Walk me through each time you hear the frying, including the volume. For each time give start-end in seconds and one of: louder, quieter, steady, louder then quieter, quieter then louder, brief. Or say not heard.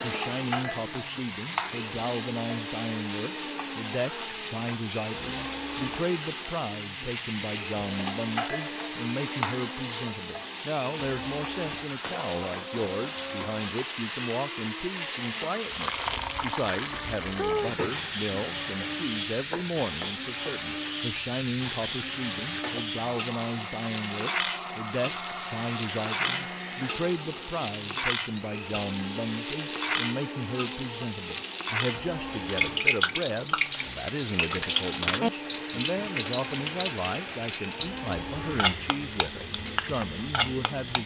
0.0-41.0 steady.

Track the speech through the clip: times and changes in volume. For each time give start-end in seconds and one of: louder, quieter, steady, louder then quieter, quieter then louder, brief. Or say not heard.
0.0-41.0 steady.